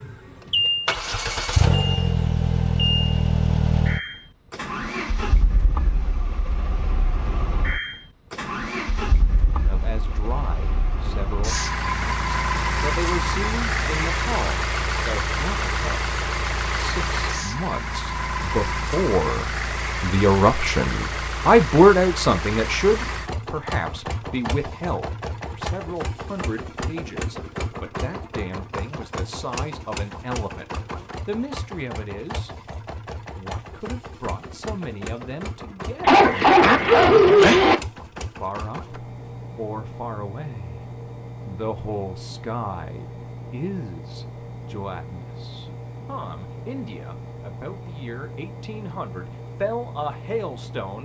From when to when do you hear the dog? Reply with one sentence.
You can hear the dog from 36.0 to 37.8 s.